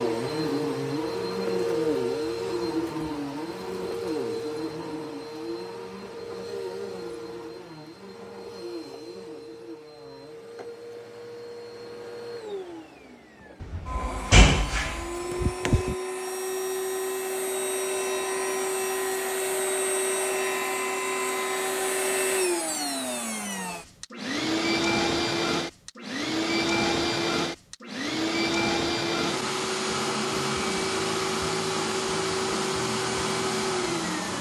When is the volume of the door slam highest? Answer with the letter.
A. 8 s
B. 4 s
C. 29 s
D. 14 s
D.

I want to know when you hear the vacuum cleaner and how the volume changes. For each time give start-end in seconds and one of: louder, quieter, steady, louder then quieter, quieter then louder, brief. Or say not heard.
0.0-34.3 quieter then louder.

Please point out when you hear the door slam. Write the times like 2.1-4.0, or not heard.
13.6-15.9.